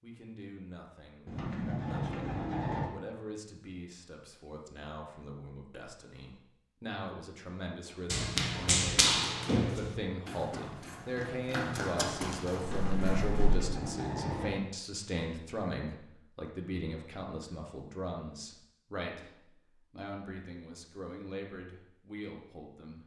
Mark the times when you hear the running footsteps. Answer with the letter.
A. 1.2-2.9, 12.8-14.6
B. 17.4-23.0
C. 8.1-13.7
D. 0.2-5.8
C.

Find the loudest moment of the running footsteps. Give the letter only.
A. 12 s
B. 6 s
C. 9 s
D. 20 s
C.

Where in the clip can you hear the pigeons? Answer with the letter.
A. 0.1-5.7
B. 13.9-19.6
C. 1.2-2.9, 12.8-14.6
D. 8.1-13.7
C.